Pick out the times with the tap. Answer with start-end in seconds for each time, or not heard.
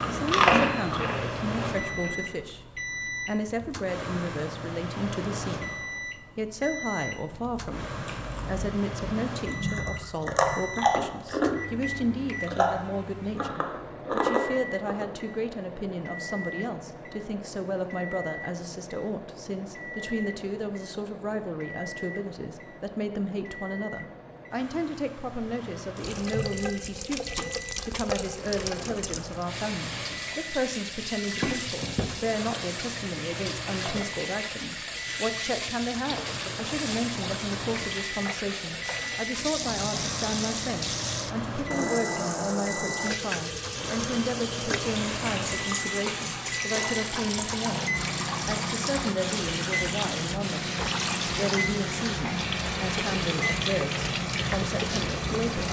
25.9-55.6.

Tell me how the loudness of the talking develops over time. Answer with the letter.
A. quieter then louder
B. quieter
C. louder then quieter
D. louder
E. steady
E.